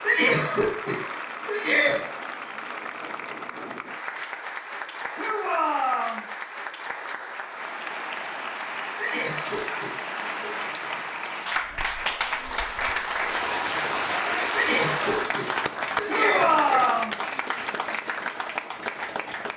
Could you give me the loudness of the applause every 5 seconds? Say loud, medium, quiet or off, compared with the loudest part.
medium, medium, loud, loud.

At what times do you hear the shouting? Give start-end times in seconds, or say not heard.
5.2-6.2, 16.1-17.1.